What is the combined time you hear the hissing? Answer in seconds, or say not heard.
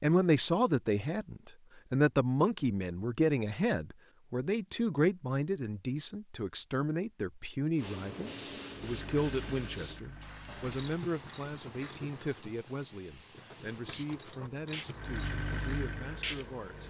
9 s.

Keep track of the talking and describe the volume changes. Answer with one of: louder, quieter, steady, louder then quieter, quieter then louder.
quieter.